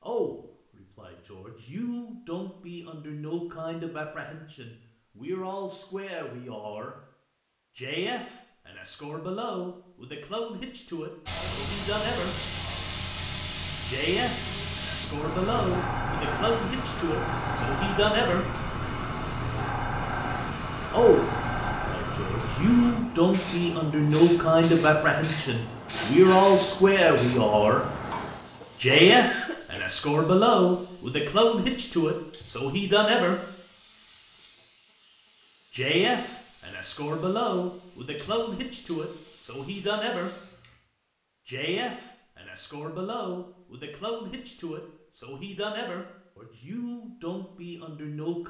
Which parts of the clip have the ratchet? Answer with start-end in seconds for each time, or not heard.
not heard.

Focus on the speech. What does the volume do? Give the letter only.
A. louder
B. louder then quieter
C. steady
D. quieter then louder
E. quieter
B.